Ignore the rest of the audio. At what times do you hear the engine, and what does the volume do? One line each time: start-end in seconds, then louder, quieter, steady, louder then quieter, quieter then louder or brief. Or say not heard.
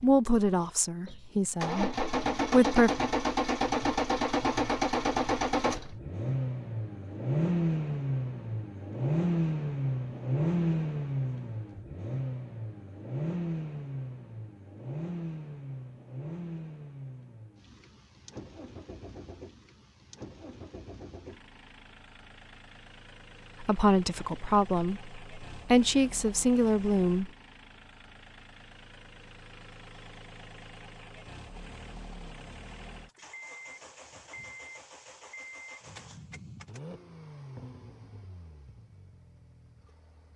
0.0-40.3 quieter.